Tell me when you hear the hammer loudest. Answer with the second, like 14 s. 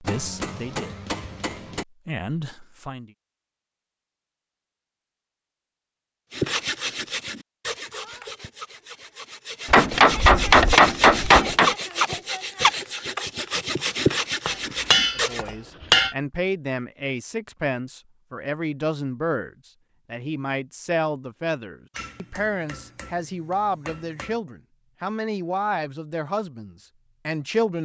11 s.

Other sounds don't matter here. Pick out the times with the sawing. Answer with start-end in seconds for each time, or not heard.
6.3-15.4.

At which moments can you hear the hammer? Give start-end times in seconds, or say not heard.
0.0-1.9, 9.7-11.7, 14.4-16.1, 21.9-24.4.